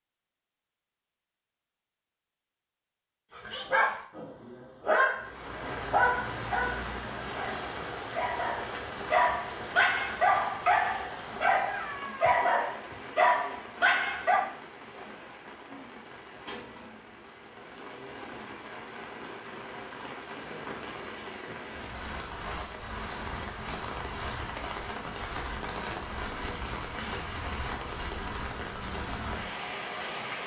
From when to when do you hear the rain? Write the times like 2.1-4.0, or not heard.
5.2-30.4.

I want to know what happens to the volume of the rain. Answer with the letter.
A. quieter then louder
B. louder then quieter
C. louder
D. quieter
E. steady
A.